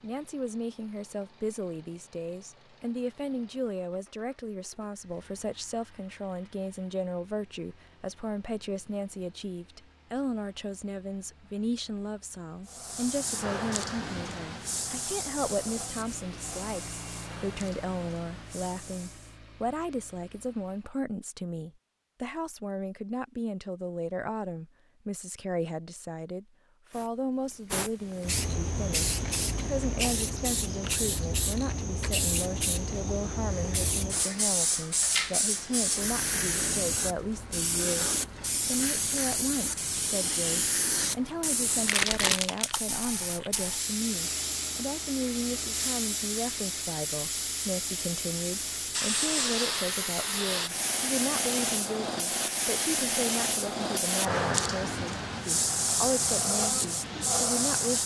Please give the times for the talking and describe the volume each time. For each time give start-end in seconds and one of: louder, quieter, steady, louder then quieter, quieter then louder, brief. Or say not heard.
0.0-58.0 steady.